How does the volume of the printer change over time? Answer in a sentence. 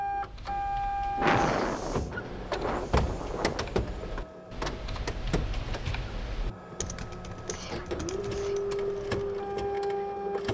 The loudness of the printer goes down, then up.